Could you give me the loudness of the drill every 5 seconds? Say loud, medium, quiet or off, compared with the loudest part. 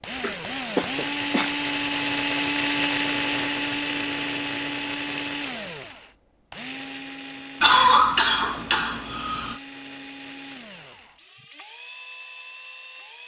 loud, medium, quiet.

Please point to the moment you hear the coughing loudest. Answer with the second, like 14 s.
8 s.